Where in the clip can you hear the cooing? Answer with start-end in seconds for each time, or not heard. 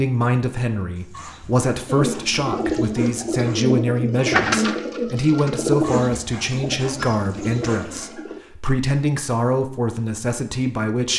1.9-8.4.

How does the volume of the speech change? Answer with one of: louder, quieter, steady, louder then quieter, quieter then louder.
steady.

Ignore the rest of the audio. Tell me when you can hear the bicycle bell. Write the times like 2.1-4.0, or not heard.
not heard.